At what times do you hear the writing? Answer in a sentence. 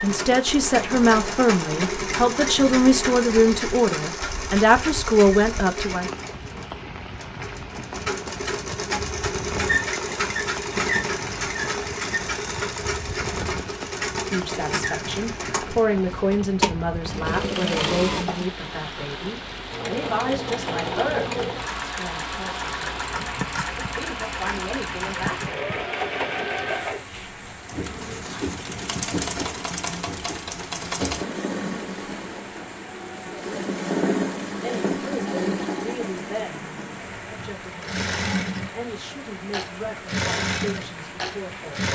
You can hear the writing from 27.7 to 29.4 s.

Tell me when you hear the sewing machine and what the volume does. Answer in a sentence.
You can hear the sewing machine from 0.0 to 41.9 s, at a steady volume.